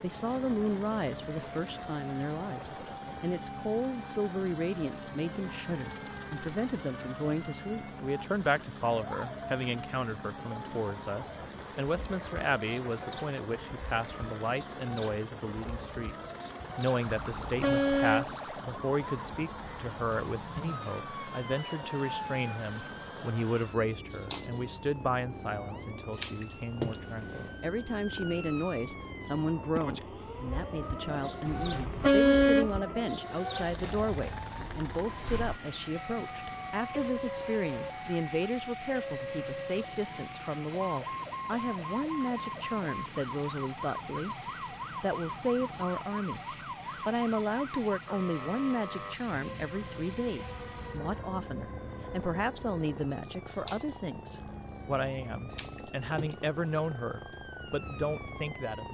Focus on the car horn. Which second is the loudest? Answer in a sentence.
The loudest moment of the car horn is at 32 seconds.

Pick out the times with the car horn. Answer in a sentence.
The car horn can be heard from 17.2 to 18.4 s and from 31.4 to 32.8 s.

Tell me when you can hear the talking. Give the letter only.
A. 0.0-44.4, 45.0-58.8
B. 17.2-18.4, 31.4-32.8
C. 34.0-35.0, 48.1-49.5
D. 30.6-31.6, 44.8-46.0
A.